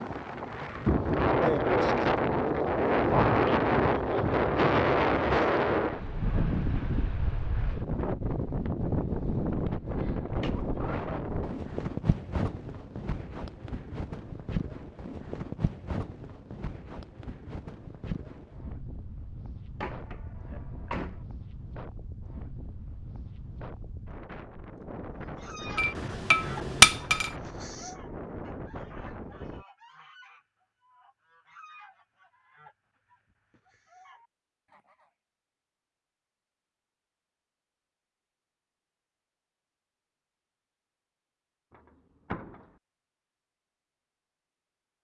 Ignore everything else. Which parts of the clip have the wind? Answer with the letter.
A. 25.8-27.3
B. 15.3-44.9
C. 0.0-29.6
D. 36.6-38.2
C.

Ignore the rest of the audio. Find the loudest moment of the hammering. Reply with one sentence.
The volume of the hammering peaks at 27 seconds.